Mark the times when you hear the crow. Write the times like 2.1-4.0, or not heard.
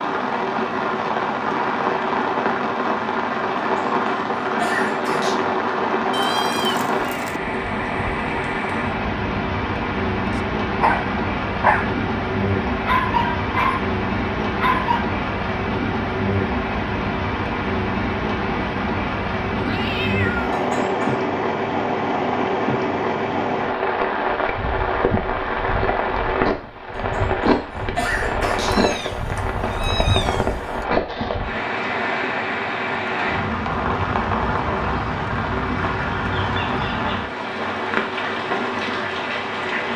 not heard.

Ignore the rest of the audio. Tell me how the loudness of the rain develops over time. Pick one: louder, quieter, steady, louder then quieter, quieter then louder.
steady.